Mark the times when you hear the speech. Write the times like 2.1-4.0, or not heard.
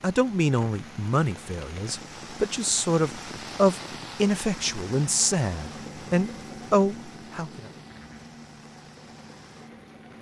0.0-7.7.